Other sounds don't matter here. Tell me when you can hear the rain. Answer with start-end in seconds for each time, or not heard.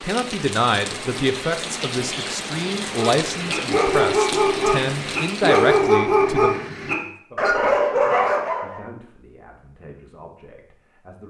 0.0-6.0.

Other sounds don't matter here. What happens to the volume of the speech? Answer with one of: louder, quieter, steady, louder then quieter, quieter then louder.
quieter.